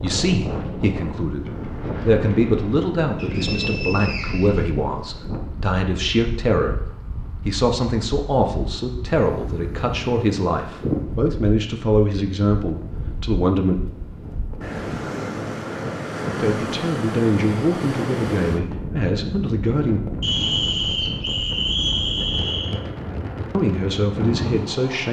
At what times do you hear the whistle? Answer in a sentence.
The whistle can be heard from 3.1 to 4.7 s and from 20.2 to 22.8 s.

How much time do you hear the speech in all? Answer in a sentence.
You can hear the speech for 18 seconds altogether.